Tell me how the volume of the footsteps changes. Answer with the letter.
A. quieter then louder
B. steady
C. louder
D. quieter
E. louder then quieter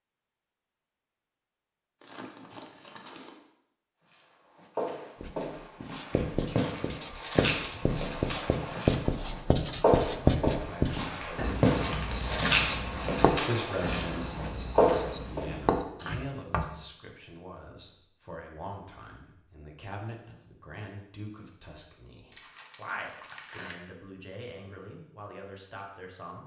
C.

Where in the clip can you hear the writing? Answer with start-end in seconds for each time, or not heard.
5.2-16.6.